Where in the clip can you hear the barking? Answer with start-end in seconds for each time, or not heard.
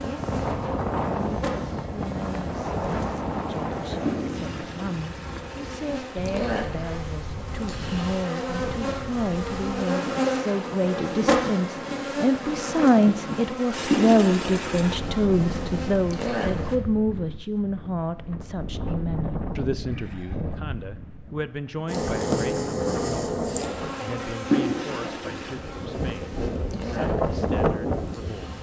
not heard.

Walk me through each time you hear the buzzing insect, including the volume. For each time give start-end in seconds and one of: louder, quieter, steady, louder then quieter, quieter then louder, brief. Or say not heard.
0.0-16.8 louder
21.9-28.5 quieter.